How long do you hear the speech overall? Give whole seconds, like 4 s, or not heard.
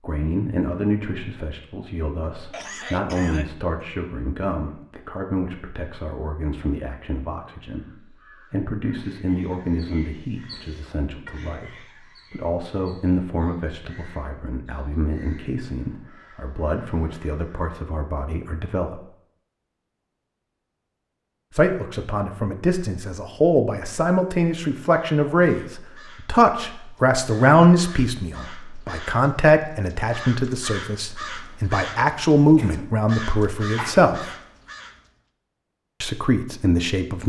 32 s.